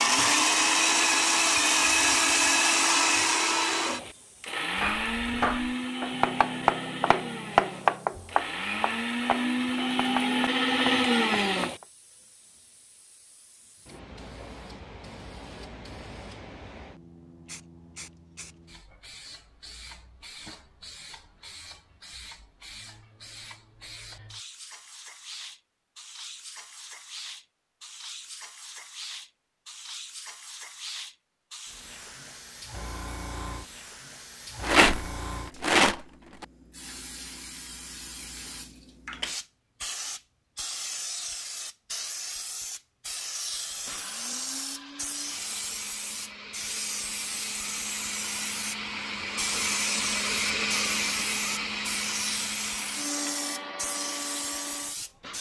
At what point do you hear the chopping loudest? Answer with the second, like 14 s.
8 s.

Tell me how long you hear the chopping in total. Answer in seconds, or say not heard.
7 s.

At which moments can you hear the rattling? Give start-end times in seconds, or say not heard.
34.6-36.5.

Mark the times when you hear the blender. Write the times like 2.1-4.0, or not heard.
0.0-11.8, 43.8-55.3.